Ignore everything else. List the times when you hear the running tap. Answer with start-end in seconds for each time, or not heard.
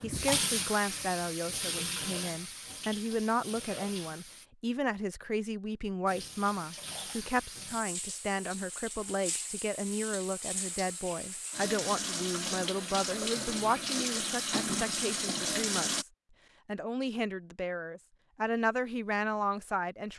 0.0-4.5, 6.0-16.1.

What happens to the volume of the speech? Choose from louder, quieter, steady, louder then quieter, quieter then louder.
steady.